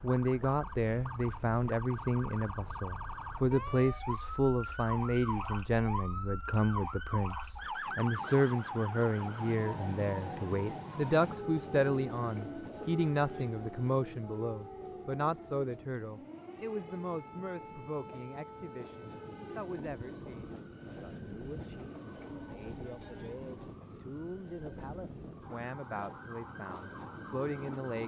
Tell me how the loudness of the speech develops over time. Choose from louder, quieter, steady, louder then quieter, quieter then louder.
quieter.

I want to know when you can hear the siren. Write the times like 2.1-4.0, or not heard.
0.0-28.0.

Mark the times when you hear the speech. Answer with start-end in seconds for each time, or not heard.
0.0-28.0.